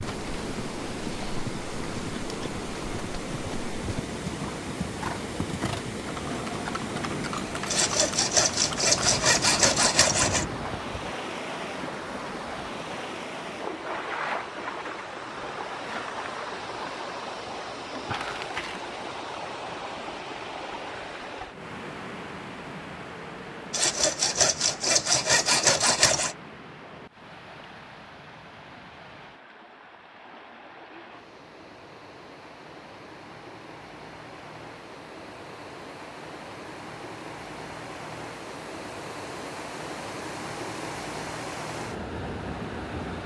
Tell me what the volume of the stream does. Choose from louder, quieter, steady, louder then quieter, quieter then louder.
quieter then louder.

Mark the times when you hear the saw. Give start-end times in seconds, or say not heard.
7.7-10.4, 23.7-26.4.